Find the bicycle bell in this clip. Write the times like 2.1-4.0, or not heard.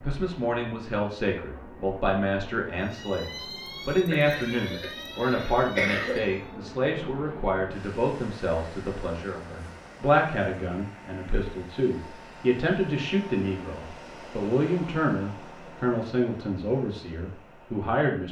not heard.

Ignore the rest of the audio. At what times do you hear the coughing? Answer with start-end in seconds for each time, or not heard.
4.1-6.2.